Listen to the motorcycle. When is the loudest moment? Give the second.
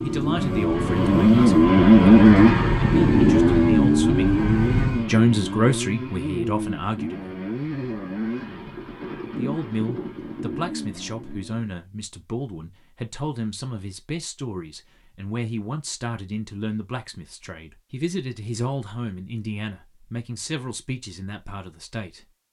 2 s.